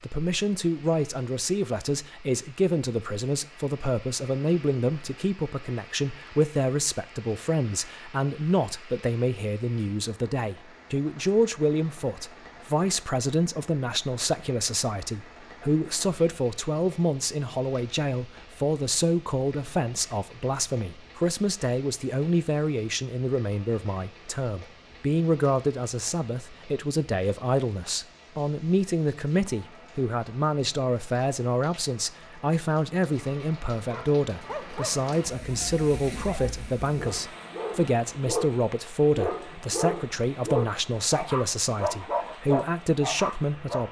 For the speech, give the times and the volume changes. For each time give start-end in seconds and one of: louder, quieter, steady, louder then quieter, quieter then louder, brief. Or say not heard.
0.0-43.8 steady.